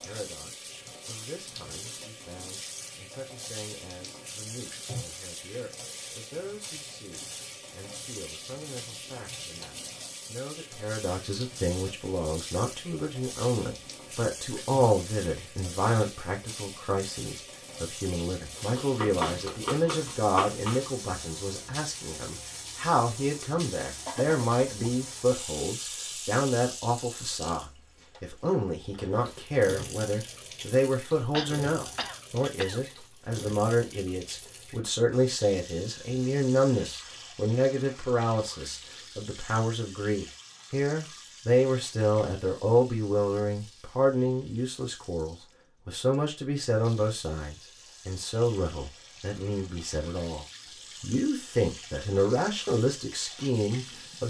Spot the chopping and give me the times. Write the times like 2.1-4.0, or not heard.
18.6-20.9.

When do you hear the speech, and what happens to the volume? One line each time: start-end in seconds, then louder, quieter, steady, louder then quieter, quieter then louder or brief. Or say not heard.
0.0-54.2 louder.